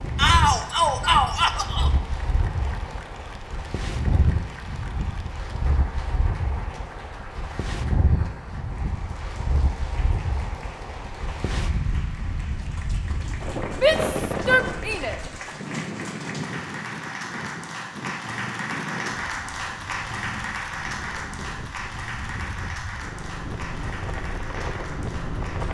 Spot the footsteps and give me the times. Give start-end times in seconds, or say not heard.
not heard.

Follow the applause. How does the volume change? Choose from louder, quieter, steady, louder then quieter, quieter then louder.
louder.